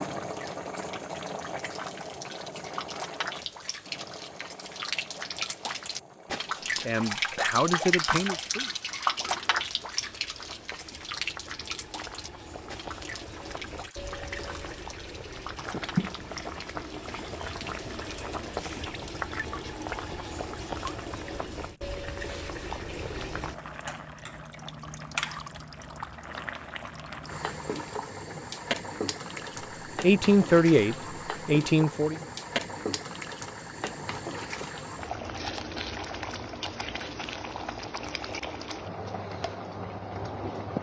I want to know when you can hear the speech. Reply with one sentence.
You can hear the speech from 6.8 to 8.7 s and from 30.0 to 32.2 s.